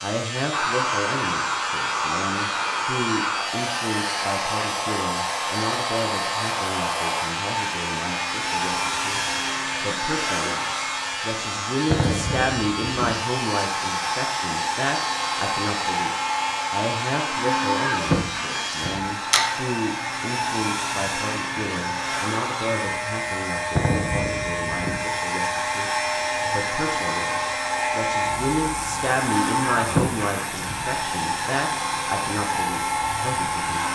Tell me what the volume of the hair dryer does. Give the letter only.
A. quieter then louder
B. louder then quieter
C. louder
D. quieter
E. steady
E.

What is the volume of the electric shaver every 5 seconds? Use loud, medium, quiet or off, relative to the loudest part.
loud, loud, loud, loud, loud, loud, medium.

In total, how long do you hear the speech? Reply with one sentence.
You can hear the speech for 34 seconds altogether.